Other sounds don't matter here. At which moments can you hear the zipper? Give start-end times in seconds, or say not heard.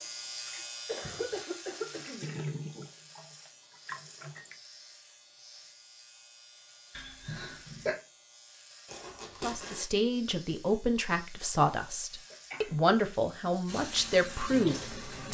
8.8-9.8.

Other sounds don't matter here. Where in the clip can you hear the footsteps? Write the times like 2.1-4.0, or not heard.
not heard.